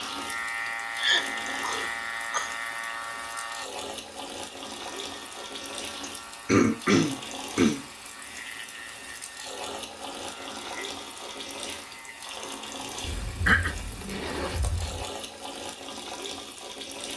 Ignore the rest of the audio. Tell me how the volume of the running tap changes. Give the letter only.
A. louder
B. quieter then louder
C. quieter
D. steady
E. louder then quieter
D.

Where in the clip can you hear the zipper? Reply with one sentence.
The zipper can be heard from 13.0 to 15.1 s.